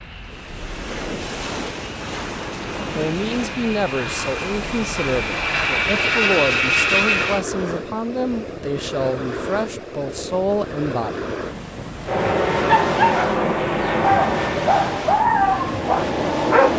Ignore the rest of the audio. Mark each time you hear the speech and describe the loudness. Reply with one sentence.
The speech can be heard from 2.9 to 11.3 s, at a steady volume.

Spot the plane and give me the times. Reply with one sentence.
The plane can be heard from 0.0 to 7.5 s and from 12.1 to 16.7 s.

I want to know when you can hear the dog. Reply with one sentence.
You can hear the dog from 12.7 to 16.7 s.